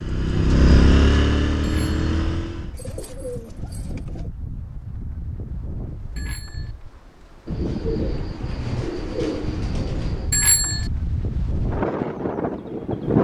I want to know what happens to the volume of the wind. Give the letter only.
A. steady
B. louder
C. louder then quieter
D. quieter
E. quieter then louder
B.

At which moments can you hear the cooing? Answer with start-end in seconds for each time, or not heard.
2.8-4.2, 7.5-10.3.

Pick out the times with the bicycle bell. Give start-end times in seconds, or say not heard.
1.6-2.0, 6.2-6.7, 10.3-10.9.